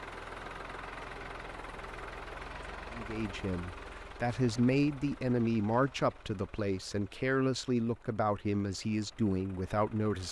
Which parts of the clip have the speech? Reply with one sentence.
The speech can be heard from 2.9 to 10.2 s.